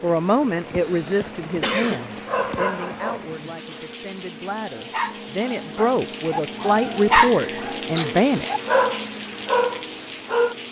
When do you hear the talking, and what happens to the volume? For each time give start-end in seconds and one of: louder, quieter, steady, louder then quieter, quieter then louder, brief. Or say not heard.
0.0-8.5 quieter then louder.